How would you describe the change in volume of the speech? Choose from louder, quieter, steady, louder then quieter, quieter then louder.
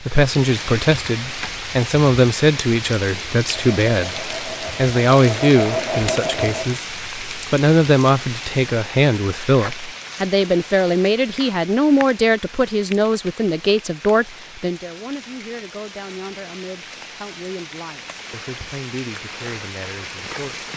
quieter.